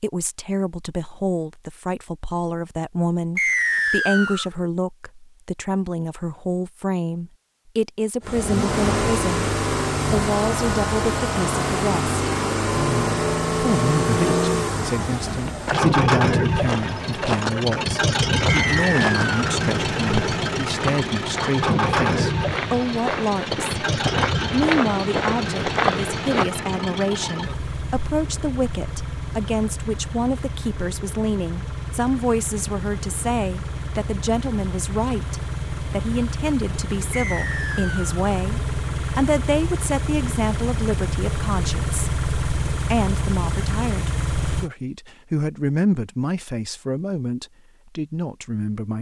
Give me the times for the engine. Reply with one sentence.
You can hear the engine from 8.2 to 44.7 s.